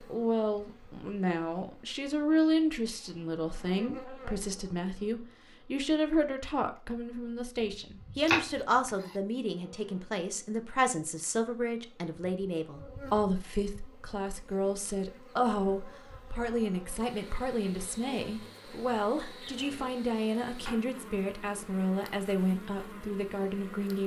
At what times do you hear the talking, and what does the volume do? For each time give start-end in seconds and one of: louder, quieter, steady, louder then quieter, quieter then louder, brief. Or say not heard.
0.0-24.0 steady.